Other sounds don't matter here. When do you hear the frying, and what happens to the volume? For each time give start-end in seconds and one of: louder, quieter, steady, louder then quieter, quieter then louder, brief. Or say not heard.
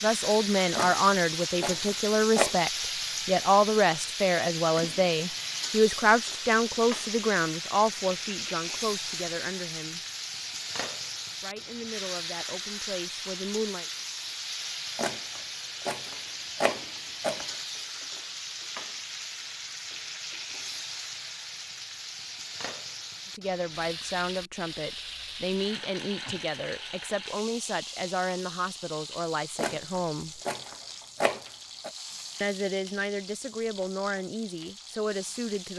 0.0-35.7 quieter.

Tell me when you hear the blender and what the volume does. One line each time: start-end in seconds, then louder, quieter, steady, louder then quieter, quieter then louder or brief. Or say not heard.
not heard.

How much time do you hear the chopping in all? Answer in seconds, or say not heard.
7 s.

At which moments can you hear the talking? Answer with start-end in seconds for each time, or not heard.
0.0-10.1, 11.4-13.8, 23.4-30.4, 32.4-35.7.